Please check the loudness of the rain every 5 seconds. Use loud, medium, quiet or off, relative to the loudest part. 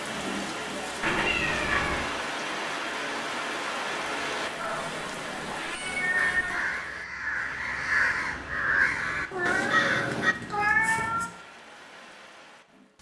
loud, medium, quiet.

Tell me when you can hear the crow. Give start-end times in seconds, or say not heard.
6.2-10.3.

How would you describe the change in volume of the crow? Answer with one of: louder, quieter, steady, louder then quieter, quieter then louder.
louder.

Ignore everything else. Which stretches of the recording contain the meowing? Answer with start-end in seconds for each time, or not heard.
1.0-2.1, 4.5-6.7, 9.3-11.3.